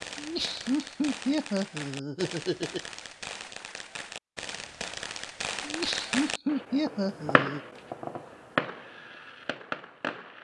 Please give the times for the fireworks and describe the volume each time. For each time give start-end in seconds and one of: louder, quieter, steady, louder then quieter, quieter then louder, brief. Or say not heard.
0.0-10.4 louder.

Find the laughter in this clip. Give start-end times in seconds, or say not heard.
0.1-2.8, 5.6-7.6.